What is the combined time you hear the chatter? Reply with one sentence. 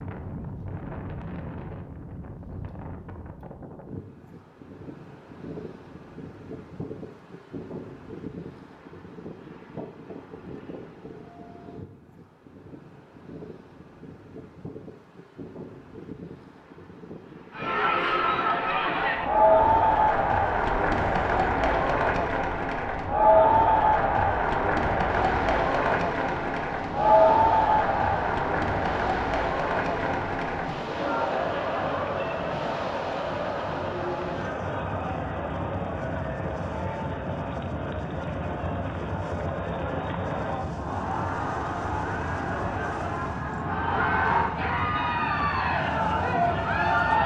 You can hear the chatter for 30 seconds altogether.